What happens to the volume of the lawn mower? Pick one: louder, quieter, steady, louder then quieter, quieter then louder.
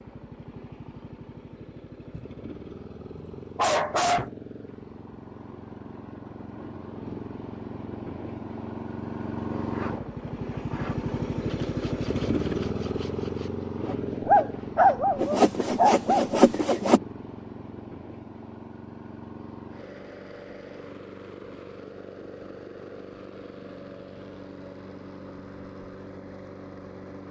louder then quieter.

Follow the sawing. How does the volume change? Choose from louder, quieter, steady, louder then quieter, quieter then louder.
louder.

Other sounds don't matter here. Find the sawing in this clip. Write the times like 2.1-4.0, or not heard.
9.6-17.0.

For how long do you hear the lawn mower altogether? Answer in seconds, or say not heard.
27 s.